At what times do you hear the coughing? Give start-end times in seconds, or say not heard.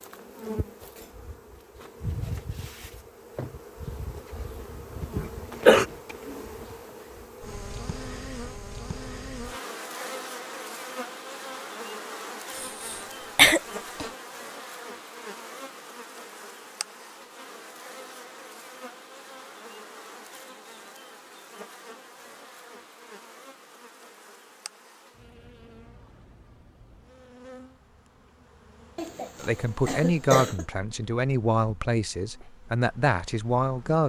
5.2-5.8, 12.6-14.1, 28.9-30.6.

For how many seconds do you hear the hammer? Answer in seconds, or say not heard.
not heard.